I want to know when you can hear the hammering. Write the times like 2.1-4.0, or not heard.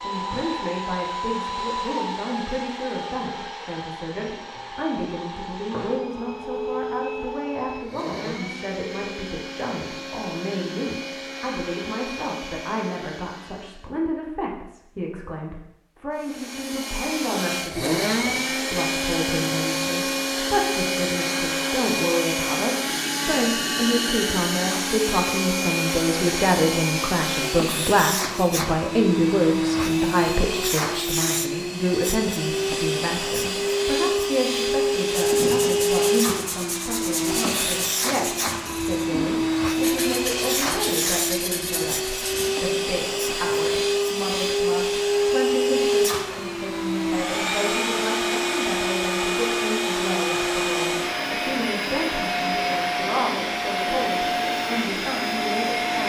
not heard.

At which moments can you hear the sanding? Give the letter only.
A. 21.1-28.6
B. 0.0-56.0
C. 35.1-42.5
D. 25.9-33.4
C.